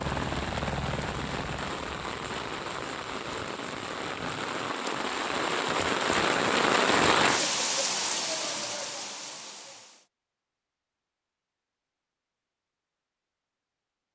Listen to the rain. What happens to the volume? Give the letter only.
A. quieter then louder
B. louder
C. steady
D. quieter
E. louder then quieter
E.